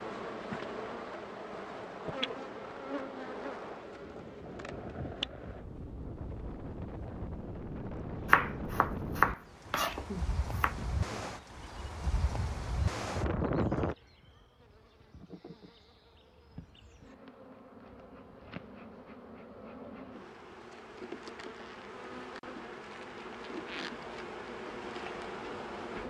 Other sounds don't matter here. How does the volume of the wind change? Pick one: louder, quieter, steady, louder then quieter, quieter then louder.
louder.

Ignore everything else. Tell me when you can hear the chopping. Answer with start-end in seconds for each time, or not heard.
8.2-10.8.